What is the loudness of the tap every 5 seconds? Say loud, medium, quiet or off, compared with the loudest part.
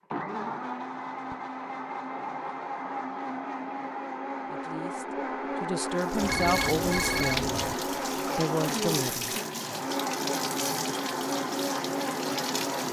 off, loud, loud.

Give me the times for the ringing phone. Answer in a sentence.
The ringing phone can be heard from 6.2 to 7.8 s.